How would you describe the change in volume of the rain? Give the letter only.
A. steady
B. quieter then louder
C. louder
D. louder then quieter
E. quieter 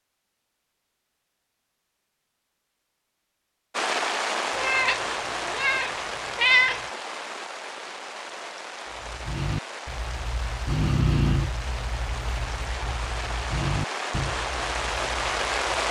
B.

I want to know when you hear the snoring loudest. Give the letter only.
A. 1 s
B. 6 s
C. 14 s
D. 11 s
D.